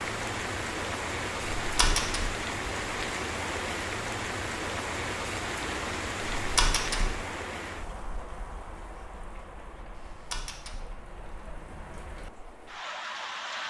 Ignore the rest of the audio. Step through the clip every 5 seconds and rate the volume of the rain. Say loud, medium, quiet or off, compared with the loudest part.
loud, loud, medium.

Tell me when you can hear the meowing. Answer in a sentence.
The meowing can be heard from 1.6 to 2.3 s, from 6.3 to 7.1 s and from 9.9 to 10.8 s.